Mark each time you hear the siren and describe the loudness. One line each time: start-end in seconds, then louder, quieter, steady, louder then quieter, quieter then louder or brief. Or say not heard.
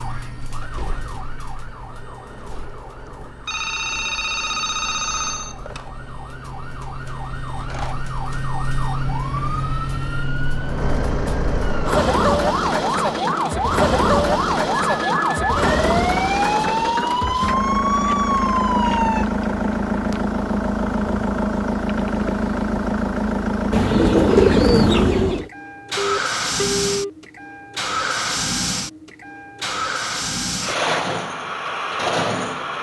0.0-19.2 louder.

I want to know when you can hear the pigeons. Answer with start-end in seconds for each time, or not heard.
23.7-25.5.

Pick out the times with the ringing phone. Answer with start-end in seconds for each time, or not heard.
3.5-5.9, 14.9-15.3, 25.9-27.1.